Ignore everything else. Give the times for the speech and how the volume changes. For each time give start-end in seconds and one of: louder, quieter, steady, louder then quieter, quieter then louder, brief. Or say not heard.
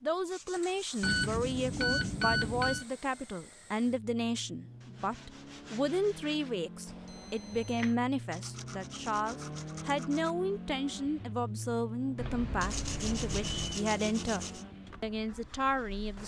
0.0-16.2 steady.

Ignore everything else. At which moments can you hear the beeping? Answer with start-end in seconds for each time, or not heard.
1.0-2.9, 6.8-8.0, 12.2-13.8.